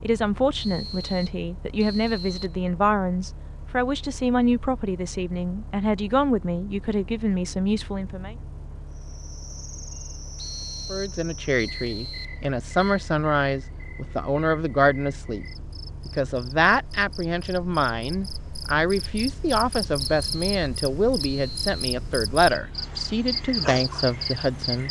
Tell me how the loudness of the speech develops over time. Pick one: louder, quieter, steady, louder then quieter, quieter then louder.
steady.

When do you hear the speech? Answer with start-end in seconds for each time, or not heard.
0.0-8.3, 10.9-15.4, 16.1-24.8.